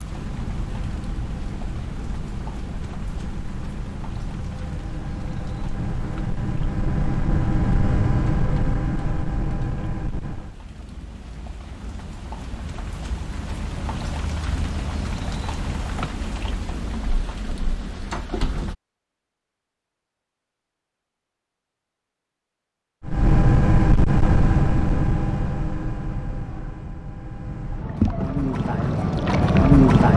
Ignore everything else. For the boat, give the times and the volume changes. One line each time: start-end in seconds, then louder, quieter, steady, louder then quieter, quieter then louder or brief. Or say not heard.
0.0-10.6 louder
23.0-30.1 quieter then louder.